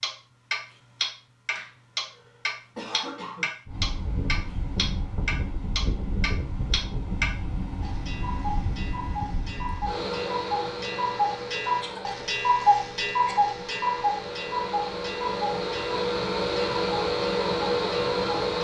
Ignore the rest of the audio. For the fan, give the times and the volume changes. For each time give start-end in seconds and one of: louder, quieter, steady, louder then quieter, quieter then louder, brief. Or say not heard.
3.6-18.5 louder.